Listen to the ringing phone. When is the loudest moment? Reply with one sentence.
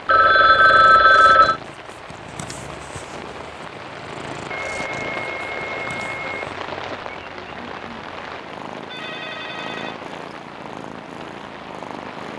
The volume of the ringing phone peaks at 1 second.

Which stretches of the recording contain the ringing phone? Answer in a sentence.
You can hear the ringing phone from 0.1 to 1.6 s, from 4.5 to 6.5 s and from 8.9 to 10.0 s.